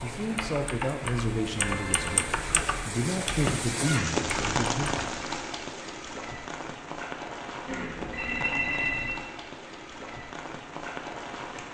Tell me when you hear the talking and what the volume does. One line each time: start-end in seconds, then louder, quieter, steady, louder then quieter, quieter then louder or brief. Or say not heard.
0.0-5.0 quieter then louder.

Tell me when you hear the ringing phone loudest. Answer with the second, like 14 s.
9 s.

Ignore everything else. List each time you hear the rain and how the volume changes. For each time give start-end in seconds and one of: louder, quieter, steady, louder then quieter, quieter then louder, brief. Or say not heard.
0.0-11.6 louder then quieter.